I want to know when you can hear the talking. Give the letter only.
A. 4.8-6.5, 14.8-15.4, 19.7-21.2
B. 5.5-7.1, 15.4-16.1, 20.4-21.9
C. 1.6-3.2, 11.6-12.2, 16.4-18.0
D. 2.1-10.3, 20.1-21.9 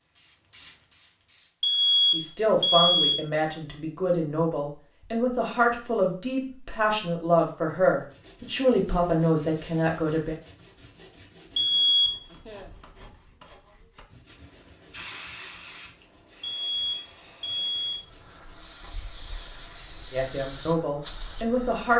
D.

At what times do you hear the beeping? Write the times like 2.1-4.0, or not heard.
1.6-3.2, 11.6-12.2, 16.4-18.0.